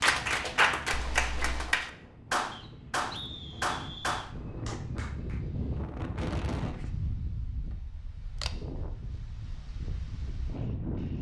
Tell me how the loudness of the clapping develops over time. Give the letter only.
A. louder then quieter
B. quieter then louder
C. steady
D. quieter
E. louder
D.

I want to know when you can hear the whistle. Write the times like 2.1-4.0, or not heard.
2.5-4.2.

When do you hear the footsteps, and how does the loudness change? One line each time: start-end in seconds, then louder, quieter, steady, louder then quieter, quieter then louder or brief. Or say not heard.
not heard.